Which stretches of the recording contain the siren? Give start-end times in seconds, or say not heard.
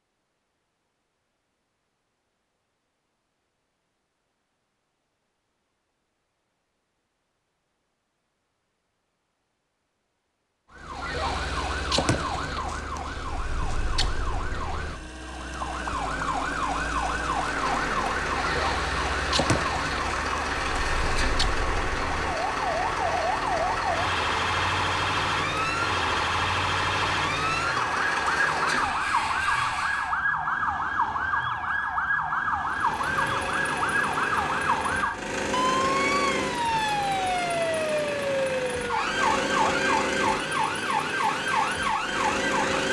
10.7-42.8.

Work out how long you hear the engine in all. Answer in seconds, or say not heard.
23 s.